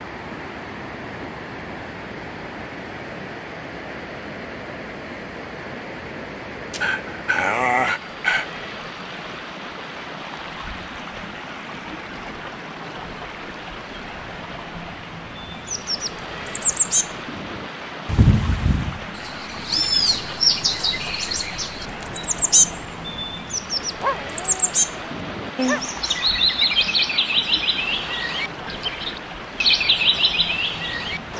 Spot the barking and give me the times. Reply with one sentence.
You can hear the barking from 6.7 to 8.5 s and from 24.0 to 25.8 s.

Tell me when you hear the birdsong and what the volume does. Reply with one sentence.
You can hear the birdsong from 15.4 to 31.3 s, at a steady volume.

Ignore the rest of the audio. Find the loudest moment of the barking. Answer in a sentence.
The loudest moment of the barking is at 8 seconds.